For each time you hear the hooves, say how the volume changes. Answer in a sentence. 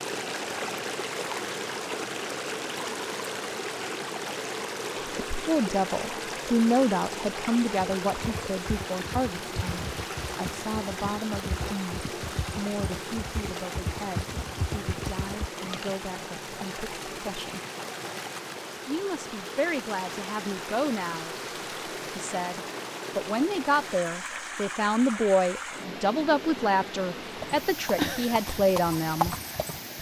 The hooves can be heard from 7.9 to 16.0 s, getting louder; and briefly from 27.4 to 29.9 s.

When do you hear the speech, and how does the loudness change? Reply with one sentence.
The speech can be heard from 5.3 to 17.6 s, getting quieter; briefly from 18.9 to 21.4 s; and from 22.1 to 29.4 s, at a steady volume.